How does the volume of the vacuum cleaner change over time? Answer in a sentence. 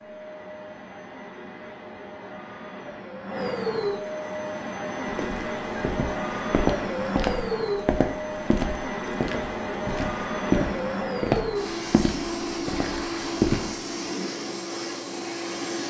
The volume of the vacuum cleaner goes up.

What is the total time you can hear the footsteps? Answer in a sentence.
The footsteps can be heard for 9 seconds in total.